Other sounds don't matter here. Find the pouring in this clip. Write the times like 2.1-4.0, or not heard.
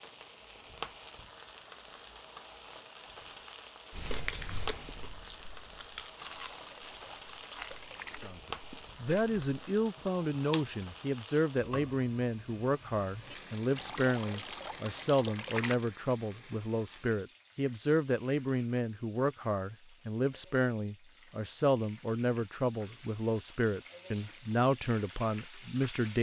6.2-8.2, 13.8-15.8.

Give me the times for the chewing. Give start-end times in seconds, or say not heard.
3.9-10.8.